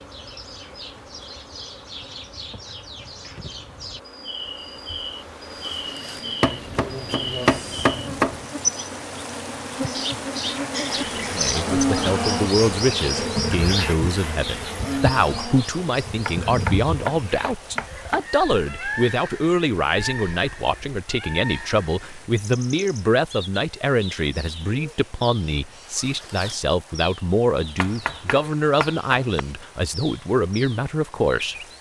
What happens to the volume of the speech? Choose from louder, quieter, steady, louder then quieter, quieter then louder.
steady.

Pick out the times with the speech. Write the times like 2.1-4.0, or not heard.
11.3-31.6.